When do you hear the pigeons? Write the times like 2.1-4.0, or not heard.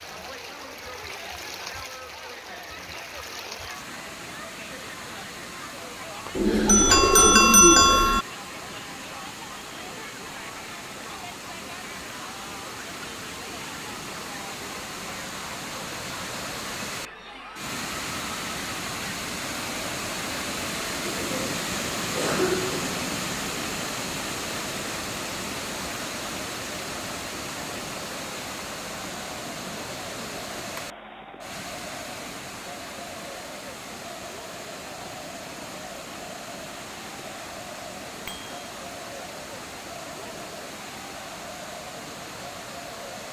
6.3-8.2, 21.1-23.6, 29.2-30.9.